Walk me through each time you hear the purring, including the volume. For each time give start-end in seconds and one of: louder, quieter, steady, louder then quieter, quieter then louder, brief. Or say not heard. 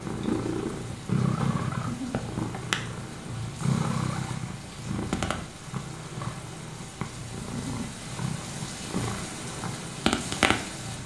0.0-11.0 quieter then louder.